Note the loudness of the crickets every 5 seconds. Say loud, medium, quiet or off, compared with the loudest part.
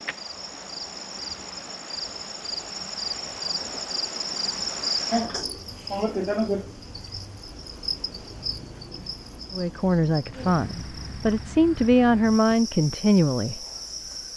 loud, loud, medium.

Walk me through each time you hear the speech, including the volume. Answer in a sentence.
The speech can be heard from 9.5 to 13.6 s, getting quieter then louder.